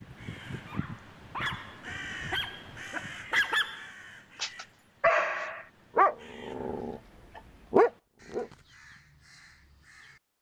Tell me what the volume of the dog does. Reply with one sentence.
The loudness of the dog goes up.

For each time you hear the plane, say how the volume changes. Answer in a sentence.
You can't hear the plane here.